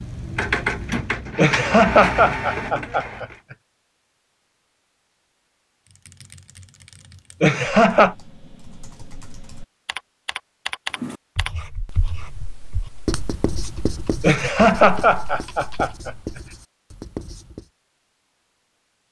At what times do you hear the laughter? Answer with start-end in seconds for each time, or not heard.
1.4-3.2, 7.4-8.2, 14.2-16.1.